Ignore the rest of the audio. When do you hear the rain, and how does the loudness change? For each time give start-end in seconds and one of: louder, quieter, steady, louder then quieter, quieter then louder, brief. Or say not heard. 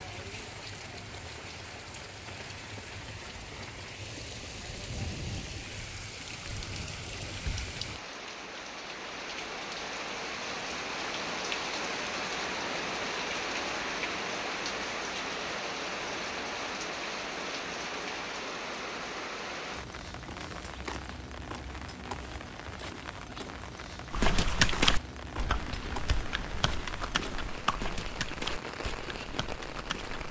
0.0-30.2 louder then quieter.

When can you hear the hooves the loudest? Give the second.
25 s.